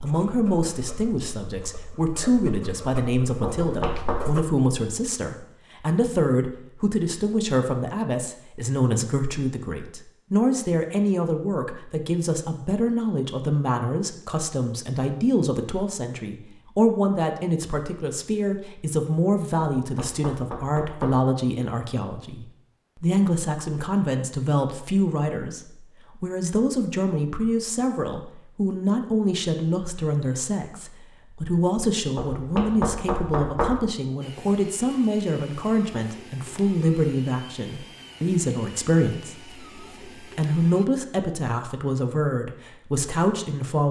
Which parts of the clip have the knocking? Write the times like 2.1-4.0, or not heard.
3.4-4.2, 19.8-21.2, 32.1-33.9.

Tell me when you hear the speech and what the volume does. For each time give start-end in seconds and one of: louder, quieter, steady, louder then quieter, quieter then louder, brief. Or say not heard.
0.0-43.8 steady.